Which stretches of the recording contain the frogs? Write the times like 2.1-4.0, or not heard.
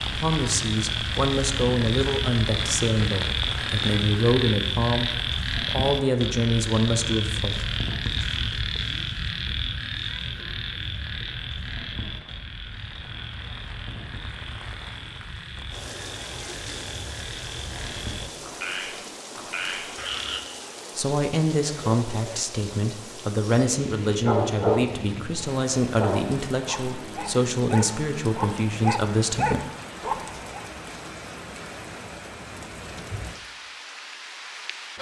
0.0-20.4.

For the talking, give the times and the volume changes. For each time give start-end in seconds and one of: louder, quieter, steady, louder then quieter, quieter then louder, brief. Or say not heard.
0.0-7.7 steady
20.9-29.6 steady.